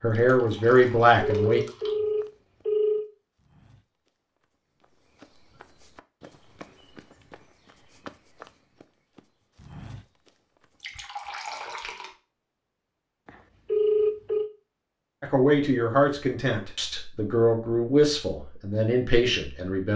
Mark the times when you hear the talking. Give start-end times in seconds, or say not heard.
0.0-1.6, 15.2-19.9.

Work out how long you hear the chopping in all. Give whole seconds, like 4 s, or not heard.
not heard.